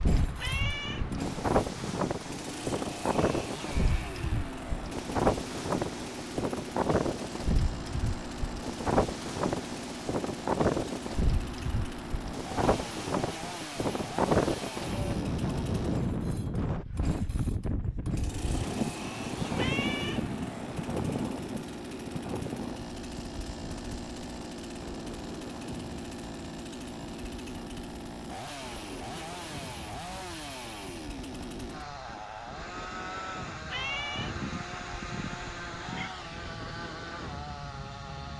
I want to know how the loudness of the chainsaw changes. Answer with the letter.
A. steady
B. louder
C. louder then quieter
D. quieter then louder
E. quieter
A.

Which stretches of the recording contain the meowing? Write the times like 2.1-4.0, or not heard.
0.3-2.1, 19.6-21.3, 33.6-36.1.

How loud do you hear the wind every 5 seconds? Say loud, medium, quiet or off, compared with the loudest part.
loud, loud, loud, loud, medium, quiet, quiet, quiet.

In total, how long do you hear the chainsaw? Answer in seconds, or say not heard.
38 s.